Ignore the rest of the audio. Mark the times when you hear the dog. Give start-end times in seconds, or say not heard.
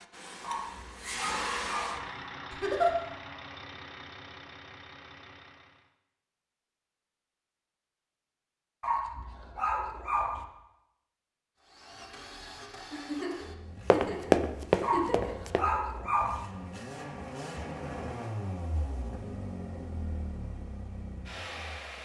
0.4-2.0, 8.8-10.4, 14.8-16.4.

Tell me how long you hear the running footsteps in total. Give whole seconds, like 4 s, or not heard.
2 s.